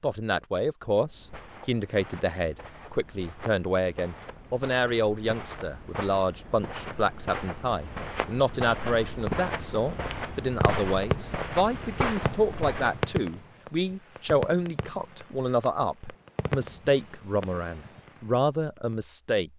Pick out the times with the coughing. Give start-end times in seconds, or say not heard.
not heard.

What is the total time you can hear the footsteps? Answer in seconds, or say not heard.
12 s.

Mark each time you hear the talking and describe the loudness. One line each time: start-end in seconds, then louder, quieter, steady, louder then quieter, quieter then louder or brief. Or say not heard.
0.0-19.5 steady.